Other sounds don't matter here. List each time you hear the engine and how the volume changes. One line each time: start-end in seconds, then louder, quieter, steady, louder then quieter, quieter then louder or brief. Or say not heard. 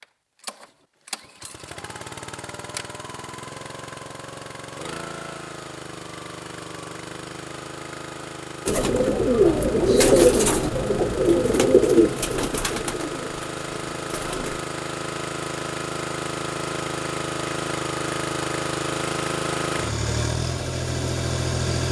0.0-21.8 louder.